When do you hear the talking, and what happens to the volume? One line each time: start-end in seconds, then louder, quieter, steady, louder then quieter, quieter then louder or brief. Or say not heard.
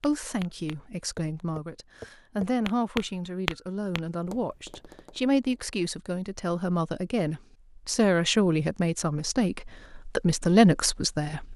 0.0-11.5 louder.